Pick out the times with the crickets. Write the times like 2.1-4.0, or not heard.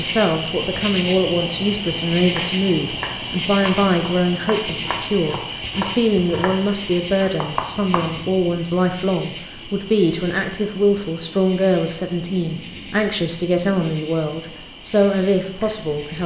0.0-16.2.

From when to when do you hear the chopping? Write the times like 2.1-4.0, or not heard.
2.2-8.1.